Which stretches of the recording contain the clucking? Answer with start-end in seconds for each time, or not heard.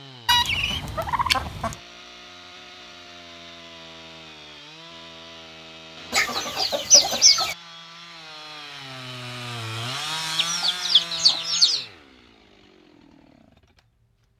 0.2-1.8, 6.1-7.5, 10.3-11.8.